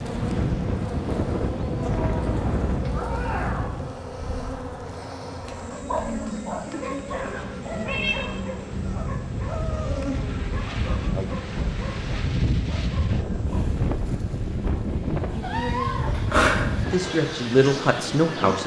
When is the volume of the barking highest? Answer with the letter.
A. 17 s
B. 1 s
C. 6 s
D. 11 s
C.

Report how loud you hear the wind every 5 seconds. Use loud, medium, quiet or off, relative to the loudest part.
loud, medium, loud, loud.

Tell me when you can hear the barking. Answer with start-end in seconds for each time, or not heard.
5.5-13.8.